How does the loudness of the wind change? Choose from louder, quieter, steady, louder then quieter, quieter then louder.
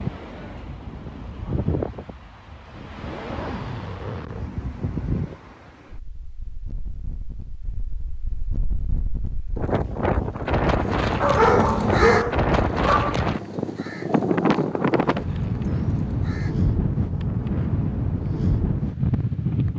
louder.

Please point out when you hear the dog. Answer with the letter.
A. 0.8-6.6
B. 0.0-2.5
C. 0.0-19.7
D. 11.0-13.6
D.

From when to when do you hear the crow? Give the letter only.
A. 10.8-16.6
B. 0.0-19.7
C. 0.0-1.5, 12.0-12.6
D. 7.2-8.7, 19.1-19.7
A.